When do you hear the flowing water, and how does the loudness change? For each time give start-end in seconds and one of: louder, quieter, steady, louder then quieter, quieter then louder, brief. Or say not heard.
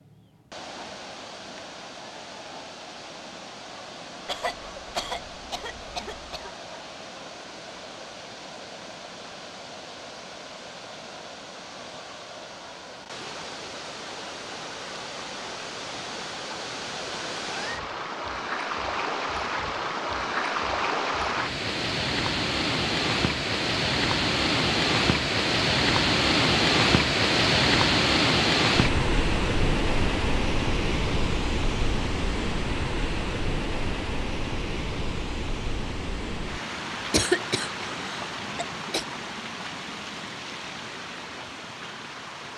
0.0-42.5 louder then quieter.